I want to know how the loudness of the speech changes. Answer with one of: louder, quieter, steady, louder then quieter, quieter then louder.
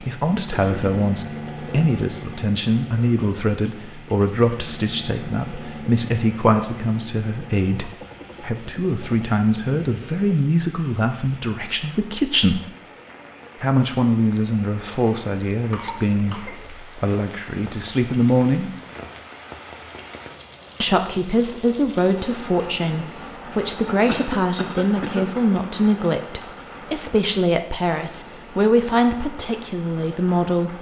steady.